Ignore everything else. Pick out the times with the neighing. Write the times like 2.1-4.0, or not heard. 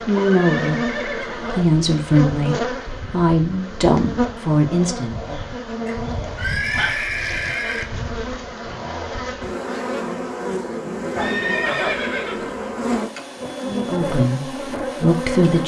0.1-1.6, 5.8-7.8, 11.2-12.6.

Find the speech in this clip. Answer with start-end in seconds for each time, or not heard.
0.1-5.4, 13.6-15.6.